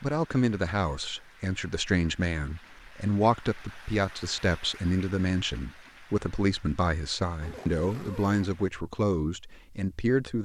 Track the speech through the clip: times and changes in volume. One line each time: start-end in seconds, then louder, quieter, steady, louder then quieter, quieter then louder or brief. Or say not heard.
0.0-10.4 steady.